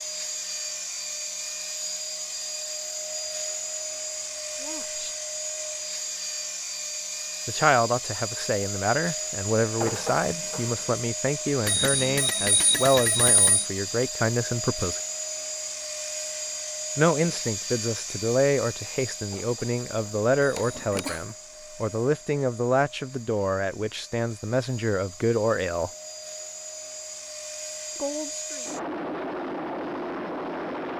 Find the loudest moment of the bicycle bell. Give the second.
13 s.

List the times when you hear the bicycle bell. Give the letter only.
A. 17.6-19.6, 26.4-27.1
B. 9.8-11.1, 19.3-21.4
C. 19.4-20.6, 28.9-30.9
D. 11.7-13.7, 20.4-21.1
D.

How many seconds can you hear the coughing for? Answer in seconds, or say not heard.
3 s.